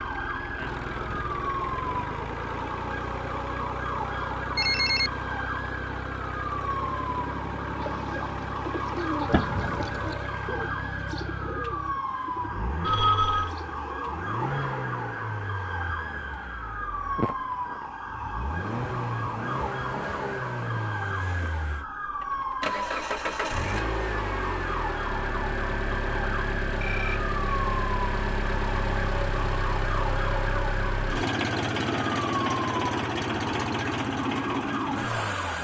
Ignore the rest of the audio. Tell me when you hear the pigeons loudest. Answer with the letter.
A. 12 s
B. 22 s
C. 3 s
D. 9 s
D.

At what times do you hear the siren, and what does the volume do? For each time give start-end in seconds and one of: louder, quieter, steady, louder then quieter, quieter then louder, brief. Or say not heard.
0.0-35.5 steady.